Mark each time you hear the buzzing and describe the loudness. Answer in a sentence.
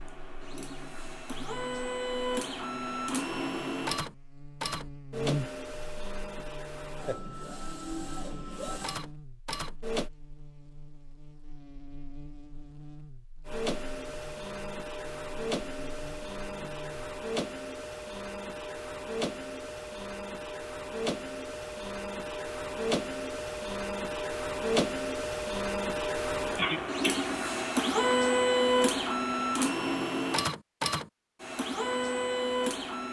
The buzzing can be heard from 0.0 to 17.1 s, getting louder then quieter.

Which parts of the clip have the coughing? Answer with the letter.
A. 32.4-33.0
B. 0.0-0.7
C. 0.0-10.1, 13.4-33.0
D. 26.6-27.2
D.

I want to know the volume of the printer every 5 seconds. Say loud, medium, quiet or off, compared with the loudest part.
medium, medium, medium, medium, medium, loud, loud.